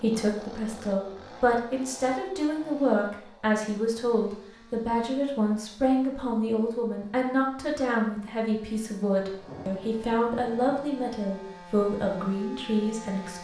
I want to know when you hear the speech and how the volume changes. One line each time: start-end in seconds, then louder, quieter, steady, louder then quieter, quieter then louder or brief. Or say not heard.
0.0-13.3 steady.